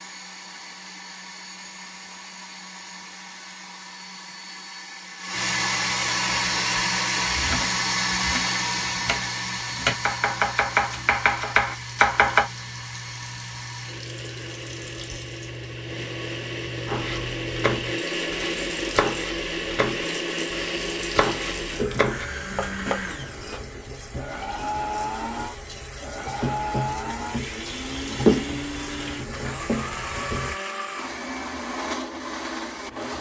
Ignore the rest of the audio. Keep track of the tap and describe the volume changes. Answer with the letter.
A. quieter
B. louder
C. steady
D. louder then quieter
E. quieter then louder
B.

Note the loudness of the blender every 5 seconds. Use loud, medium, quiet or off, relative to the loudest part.
quiet, loud, quiet, medium, medium, medium, medium.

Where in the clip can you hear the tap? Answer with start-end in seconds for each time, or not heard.
5.3-30.6.